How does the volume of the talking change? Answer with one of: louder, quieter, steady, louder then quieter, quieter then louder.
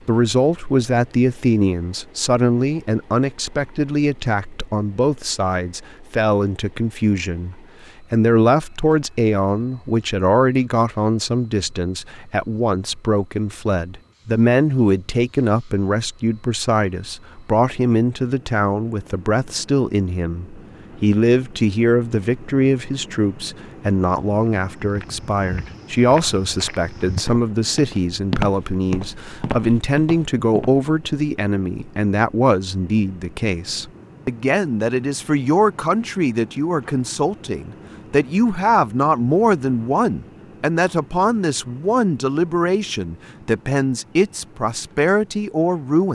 steady.